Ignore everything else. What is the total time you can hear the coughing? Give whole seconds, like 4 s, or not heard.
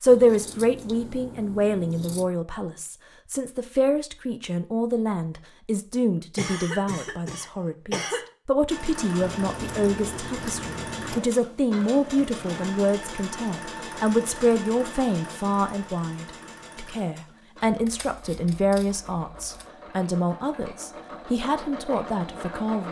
2 s.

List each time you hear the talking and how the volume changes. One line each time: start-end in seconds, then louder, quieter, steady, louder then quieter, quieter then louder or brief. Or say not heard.
0.0-22.8 steady.